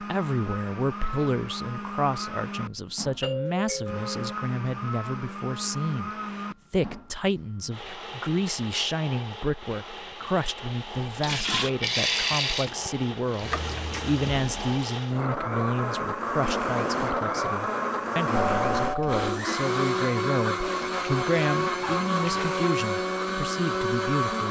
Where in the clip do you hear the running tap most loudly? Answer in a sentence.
The loudest moment of the running tap is at 12 seconds.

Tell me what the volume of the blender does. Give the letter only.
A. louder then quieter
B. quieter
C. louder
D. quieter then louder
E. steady
C.